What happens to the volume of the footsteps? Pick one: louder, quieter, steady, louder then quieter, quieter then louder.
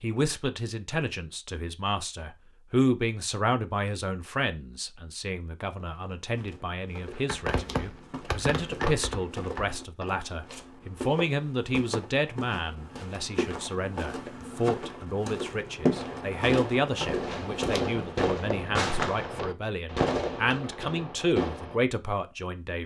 louder.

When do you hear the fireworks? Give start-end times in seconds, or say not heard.
7.1-10.1, 15.8-21.8.